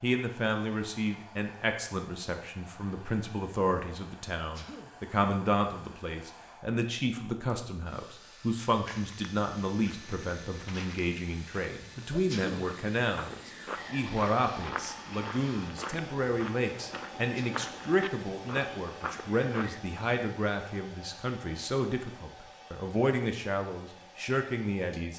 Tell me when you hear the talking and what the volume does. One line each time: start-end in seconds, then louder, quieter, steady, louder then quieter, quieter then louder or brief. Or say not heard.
0.0-25.1 steady.